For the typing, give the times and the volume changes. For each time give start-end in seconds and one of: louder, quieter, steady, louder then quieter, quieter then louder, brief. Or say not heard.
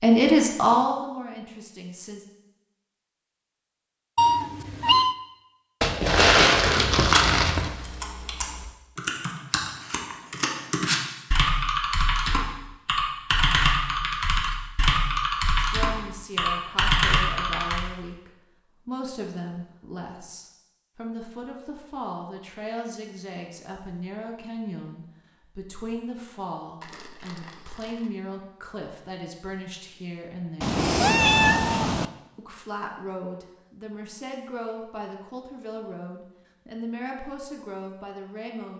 7.0-17.9 louder.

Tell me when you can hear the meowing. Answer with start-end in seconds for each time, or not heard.
4.2-5.2, 30.6-32.1.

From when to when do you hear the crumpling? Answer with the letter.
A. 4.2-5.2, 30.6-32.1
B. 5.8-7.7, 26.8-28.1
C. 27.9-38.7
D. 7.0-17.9
B.